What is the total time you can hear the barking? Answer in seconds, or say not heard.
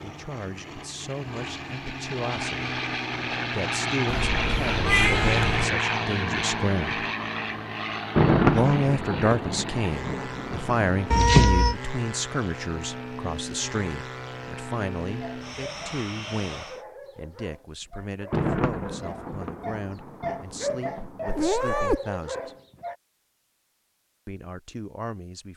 8 s.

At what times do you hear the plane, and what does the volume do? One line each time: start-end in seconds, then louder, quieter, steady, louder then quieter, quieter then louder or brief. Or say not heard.
0.0-16.9 louder then quieter.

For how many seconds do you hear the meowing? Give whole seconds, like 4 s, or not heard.
3 s.